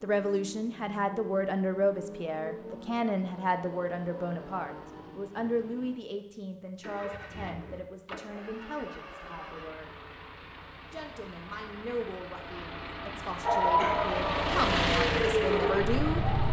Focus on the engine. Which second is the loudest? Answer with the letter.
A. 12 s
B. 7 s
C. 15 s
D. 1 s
C.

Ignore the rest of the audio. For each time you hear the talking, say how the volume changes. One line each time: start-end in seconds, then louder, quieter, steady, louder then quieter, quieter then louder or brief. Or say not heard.
0.0-9.9 quieter
10.9-16.2 quieter then louder.